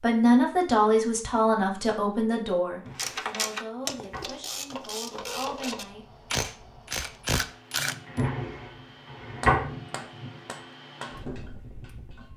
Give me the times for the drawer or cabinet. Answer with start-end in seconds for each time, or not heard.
2.8-4.4, 8.1-9.7.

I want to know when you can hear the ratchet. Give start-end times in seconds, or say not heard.
3.0-8.2.